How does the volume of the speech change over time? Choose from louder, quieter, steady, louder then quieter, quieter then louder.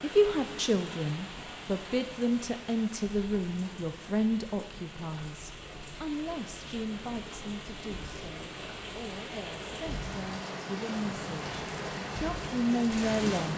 quieter then louder.